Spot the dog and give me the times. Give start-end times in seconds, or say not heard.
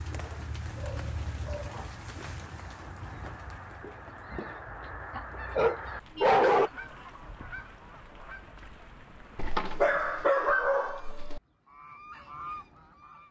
0.1-1.9, 5.2-6.7, 9.3-11.4.